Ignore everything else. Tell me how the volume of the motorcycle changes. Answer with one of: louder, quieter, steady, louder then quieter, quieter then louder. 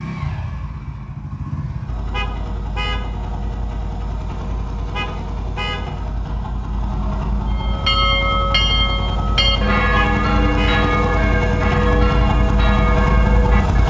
louder.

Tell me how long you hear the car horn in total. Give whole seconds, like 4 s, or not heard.
3 s.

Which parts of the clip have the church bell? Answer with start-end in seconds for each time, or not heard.
7.5-13.8.